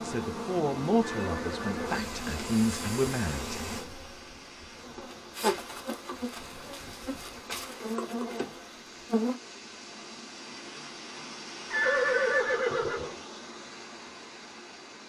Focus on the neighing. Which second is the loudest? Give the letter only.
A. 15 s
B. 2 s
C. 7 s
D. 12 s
D.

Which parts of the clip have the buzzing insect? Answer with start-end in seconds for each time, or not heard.
0.0-9.4.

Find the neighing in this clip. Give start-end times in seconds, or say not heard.
1.0-1.8, 11.7-13.2.